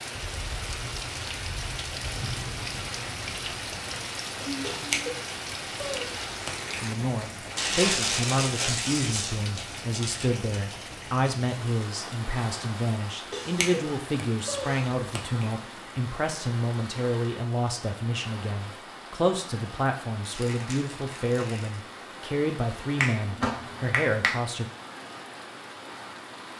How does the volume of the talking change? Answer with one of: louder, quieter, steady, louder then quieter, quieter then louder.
steady.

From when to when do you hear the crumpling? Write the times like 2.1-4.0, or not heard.
7.5-10.3, 20.2-21.8.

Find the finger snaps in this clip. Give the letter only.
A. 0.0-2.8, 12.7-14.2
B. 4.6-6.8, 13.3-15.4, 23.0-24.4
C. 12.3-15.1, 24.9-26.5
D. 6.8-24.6
B.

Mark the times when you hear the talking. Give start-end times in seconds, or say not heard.
6.8-24.6.